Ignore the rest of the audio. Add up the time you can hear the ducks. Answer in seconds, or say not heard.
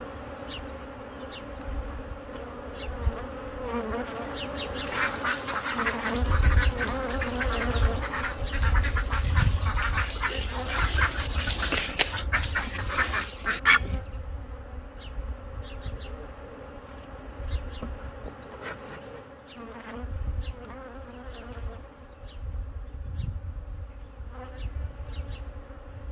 9 s.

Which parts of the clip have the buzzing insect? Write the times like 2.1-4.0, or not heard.
0.0-26.0.